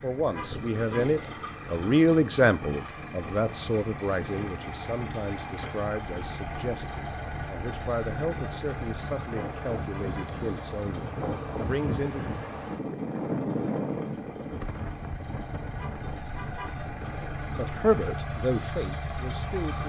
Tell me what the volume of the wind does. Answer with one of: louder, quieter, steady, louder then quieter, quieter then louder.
louder then quieter.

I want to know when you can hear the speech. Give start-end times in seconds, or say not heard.
0.0-12.3, 17.6-19.8.